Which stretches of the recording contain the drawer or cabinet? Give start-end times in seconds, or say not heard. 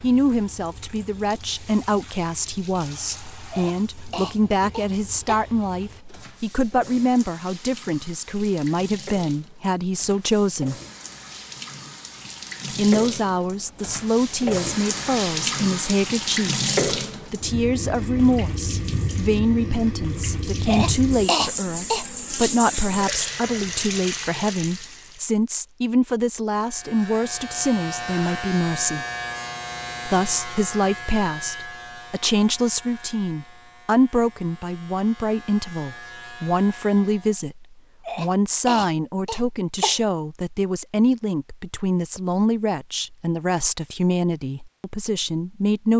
not heard.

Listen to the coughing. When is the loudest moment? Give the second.
21 s.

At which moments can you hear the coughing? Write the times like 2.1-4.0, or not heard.
3.5-5.5, 20.6-22.1, 38.0-40.0.